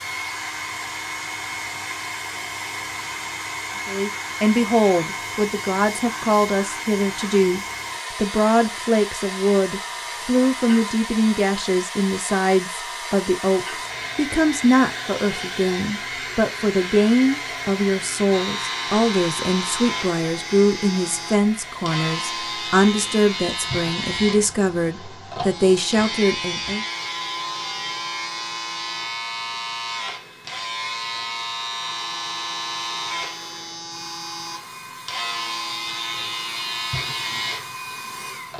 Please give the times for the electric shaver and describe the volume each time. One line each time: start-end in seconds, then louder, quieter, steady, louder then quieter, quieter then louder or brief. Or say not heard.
18.3-38.5 steady.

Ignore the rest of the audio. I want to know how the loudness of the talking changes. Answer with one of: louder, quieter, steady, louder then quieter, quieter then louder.
steady.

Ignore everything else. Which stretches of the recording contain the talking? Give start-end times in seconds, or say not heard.
3.9-26.9.